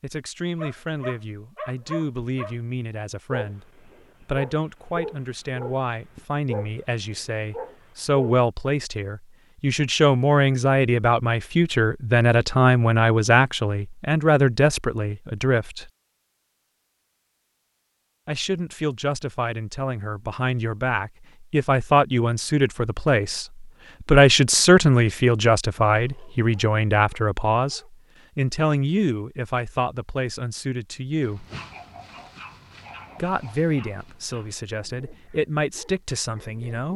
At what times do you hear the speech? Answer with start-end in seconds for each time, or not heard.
0.0-15.9, 18.2-31.4, 33.1-36.9.